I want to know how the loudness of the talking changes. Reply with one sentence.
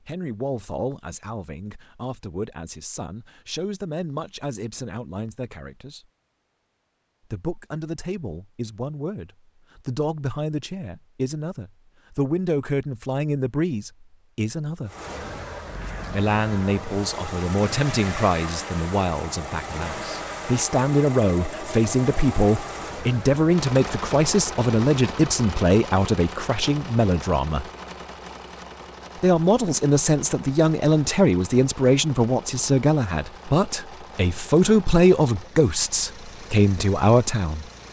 The volume of the talking goes up.